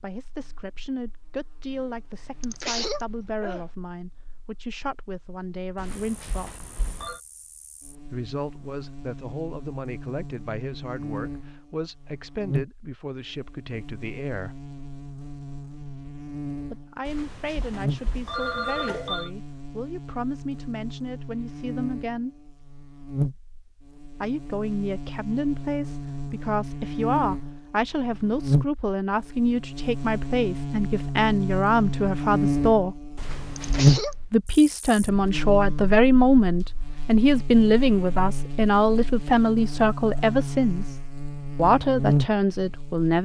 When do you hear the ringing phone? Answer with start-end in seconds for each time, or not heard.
5.8-7.2, 17.1-19.3, 33.1-34.0.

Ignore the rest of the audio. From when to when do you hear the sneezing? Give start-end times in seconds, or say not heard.
2.4-3.6, 33.5-34.1.